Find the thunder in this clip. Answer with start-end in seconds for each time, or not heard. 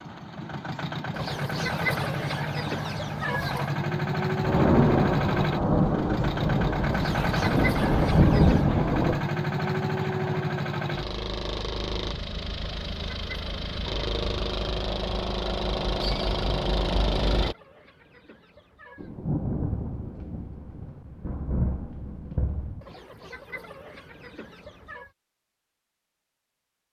4.4-9.2, 18.9-22.9.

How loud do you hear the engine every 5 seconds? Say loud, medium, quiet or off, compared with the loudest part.
loud, loud, loud, loud, off, off.